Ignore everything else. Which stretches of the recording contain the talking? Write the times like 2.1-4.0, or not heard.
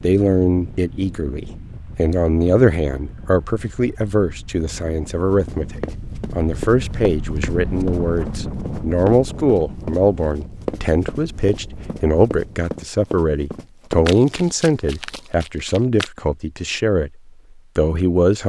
0.0-18.4.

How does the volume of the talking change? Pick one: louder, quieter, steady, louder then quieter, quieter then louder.
steady.